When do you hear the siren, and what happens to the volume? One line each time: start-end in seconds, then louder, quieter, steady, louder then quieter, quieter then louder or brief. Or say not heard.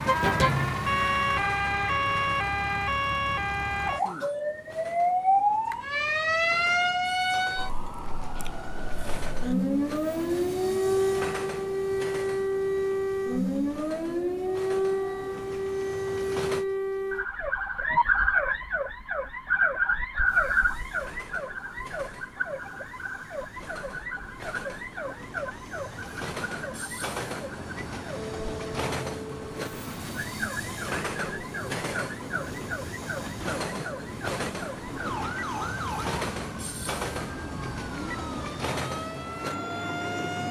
0.0-40.4 quieter.